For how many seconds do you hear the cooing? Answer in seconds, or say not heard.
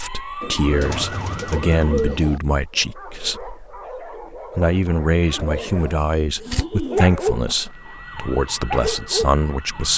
4 s.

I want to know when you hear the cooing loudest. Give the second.
2 s.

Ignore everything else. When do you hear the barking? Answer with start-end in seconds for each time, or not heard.
2.6-9.4.